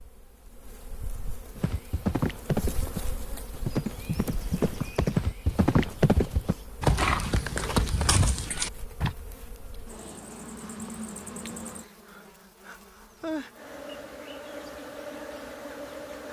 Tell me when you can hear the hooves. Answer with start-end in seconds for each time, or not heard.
1.6-9.2.